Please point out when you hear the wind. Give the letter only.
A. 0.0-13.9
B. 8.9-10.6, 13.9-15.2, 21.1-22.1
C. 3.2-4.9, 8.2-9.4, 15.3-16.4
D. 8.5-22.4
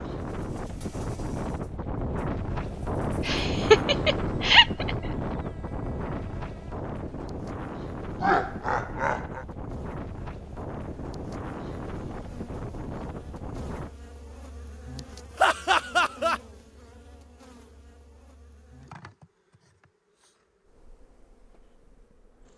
A.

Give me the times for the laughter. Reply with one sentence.
The laughter can be heard from 3.2 to 4.9 s, from 8.2 to 9.4 s and from 15.3 to 16.4 s.